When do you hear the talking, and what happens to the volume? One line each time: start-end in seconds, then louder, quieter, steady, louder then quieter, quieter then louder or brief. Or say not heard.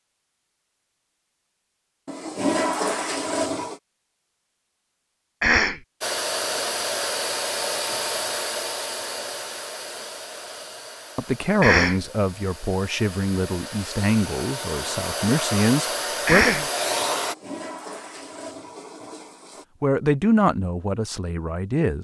11.2-16.6 quieter then louder
19.8-21.9 brief.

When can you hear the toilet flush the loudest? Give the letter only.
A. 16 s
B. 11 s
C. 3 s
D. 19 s
C.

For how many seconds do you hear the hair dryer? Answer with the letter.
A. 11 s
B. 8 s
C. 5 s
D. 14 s
A.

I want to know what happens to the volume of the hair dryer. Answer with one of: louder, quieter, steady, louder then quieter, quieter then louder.
quieter then louder.